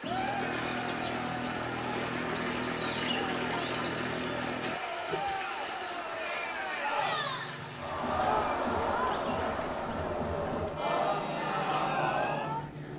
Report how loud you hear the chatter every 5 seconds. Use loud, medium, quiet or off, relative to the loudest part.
medium, loud, loud.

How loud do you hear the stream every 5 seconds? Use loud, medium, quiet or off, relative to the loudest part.
loud, medium, off.